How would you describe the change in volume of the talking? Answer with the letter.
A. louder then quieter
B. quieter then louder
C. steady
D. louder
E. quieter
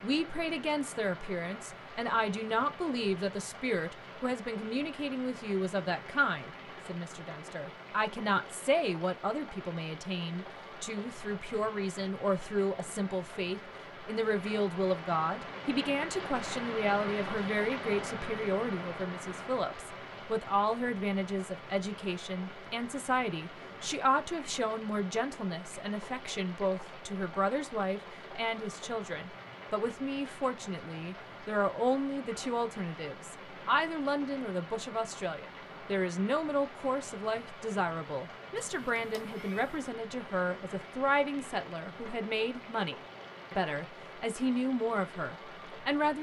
C.